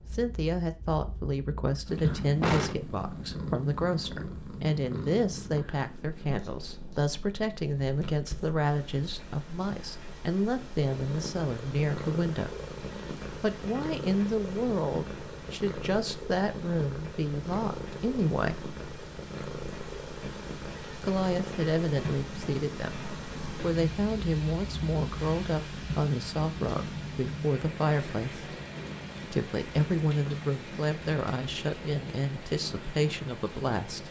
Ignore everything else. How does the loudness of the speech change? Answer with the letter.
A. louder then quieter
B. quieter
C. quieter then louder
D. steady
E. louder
D.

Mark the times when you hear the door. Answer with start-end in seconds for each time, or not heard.
2.4-3.2.